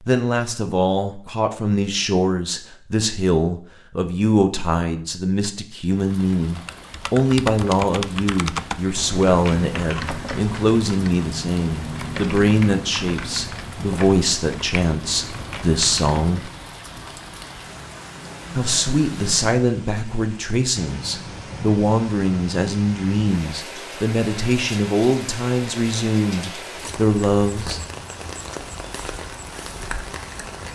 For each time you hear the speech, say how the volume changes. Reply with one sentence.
The speech can be heard from 0.1 to 16.5 s, at a steady volume; and from 18.6 to 27.8 s, at a steady volume.